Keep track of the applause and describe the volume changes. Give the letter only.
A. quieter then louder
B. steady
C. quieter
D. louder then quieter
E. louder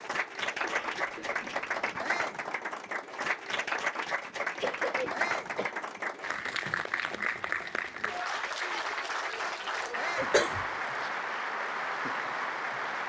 B.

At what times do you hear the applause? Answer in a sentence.
The applause can be heard from 0.0 to 13.0 s.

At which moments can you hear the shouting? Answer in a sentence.
You can hear the shouting from 1.9 to 2.5 s, from 5.1 to 5.5 s and from 9.9 to 10.4 s.